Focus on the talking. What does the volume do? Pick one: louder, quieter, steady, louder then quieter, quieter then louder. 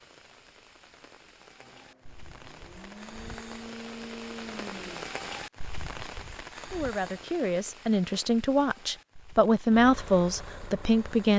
louder then quieter.